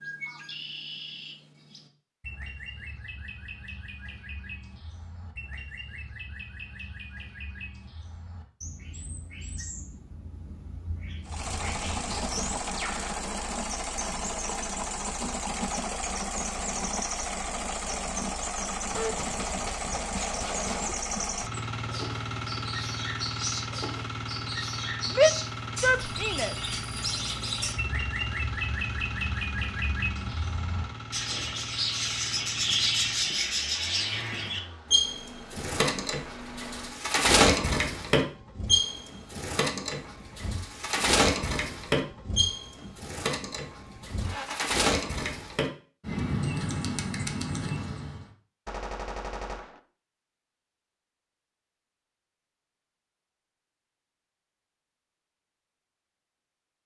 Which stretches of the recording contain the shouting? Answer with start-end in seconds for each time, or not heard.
25.1-26.6.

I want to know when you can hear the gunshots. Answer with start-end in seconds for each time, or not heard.
18.9-20.9, 48.6-49.8.